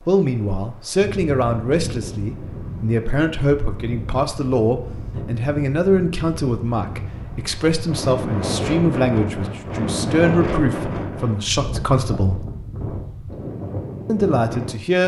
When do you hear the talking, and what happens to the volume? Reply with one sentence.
You can hear the talking from 0.1 to 12.4 s, at a steady volume; and briefly from 14.1 to 15.0 s.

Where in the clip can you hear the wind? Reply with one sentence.
The wind can be heard from 0.0 to 15.0 s.